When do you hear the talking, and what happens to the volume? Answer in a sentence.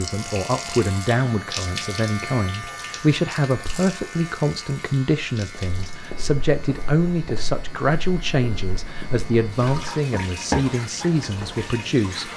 You can hear the talking from 0.0 to 12.3 s, at a steady volume.